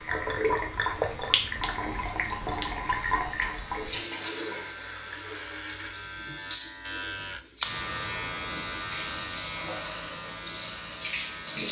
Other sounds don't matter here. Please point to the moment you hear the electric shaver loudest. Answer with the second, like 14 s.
8 s.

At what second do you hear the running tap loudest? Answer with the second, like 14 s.
1 s.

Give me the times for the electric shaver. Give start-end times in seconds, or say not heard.
0.0-11.6.